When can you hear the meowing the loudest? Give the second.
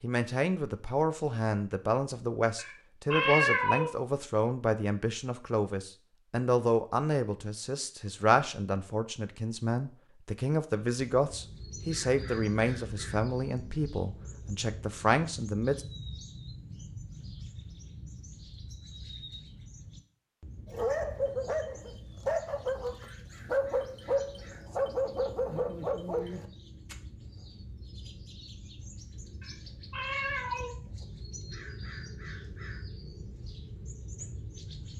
3 s.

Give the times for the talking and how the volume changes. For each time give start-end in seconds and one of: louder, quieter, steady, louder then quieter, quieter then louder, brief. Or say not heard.
0.0-15.8 steady.